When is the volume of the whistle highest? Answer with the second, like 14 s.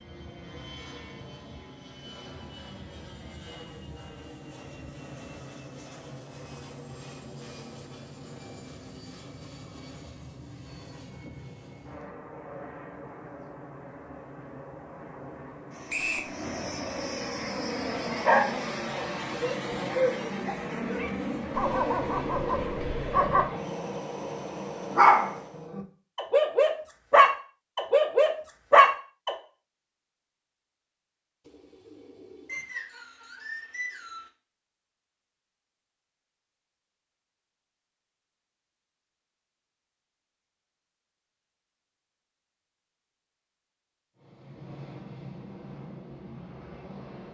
16 s.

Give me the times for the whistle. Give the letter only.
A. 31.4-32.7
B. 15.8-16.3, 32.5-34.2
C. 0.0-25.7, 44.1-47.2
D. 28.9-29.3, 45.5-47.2
B.